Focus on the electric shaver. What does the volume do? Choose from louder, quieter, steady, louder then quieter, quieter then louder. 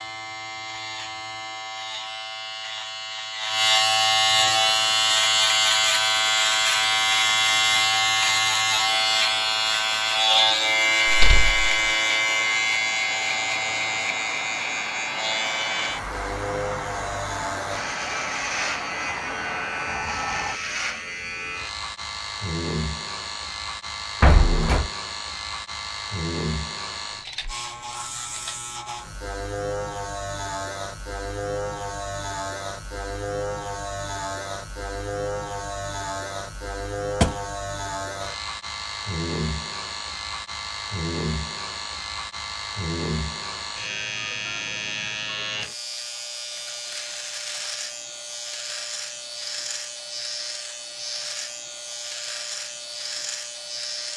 quieter.